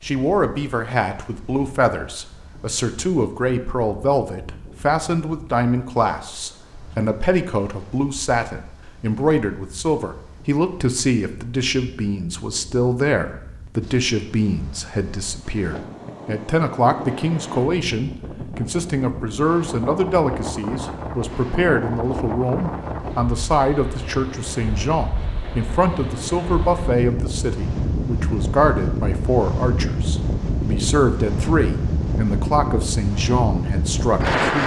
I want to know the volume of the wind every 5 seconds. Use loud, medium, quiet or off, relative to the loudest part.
quiet, quiet, quiet, medium, medium, loud, loud.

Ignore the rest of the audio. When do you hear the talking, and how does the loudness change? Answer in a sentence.
The talking can be heard from 0.0 to 34.6 s, at a steady volume.